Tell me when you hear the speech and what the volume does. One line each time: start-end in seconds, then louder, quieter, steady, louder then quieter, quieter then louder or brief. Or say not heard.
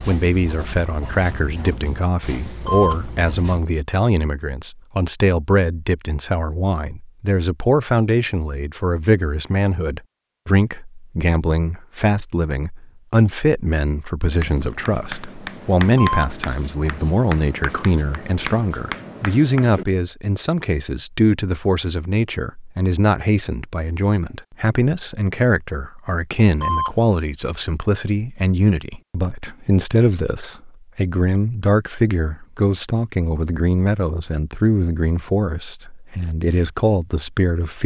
0.1-37.8 steady.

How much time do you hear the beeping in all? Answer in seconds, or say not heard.
2 s.